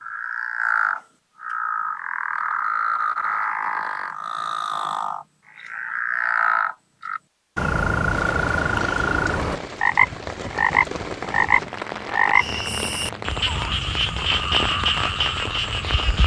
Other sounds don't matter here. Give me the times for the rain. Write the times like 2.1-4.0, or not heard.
8.1-16.2.